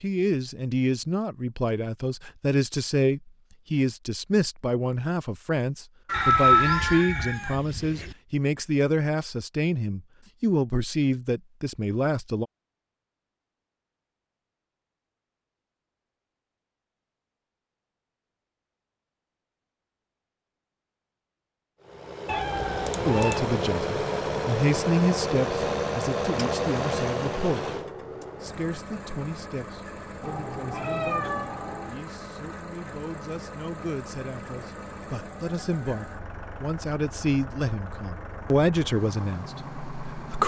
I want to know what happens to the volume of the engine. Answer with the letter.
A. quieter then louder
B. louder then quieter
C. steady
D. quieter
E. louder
D.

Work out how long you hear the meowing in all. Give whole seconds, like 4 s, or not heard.
4 s.